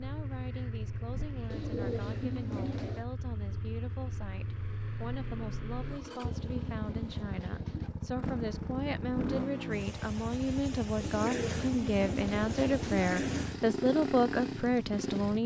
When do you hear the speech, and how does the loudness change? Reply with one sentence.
The speech can be heard from 0.0 to 15.4 s, getting louder.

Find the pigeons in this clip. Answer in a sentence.
You can hear the pigeons from 1.5 to 3.0 s, from 5.8 to 7.9 s and from 11.0 to 13.4 s.